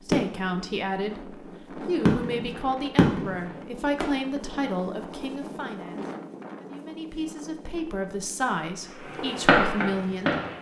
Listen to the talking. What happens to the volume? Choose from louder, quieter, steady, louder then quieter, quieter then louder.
steady.